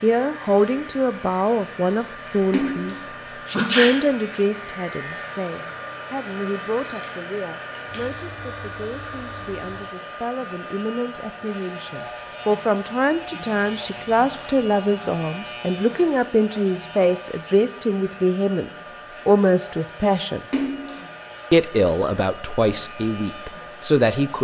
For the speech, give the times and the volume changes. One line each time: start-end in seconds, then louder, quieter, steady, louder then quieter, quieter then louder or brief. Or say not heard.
0.0-20.4 quieter then louder
21.5-24.4 brief.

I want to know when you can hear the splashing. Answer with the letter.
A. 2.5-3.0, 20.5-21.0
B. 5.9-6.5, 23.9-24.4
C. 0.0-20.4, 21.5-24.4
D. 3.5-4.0
A.